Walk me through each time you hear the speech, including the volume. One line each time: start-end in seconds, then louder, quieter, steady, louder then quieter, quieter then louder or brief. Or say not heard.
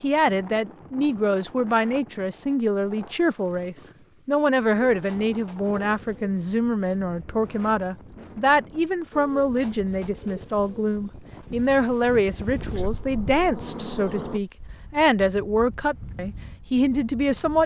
0.0-17.6 steady.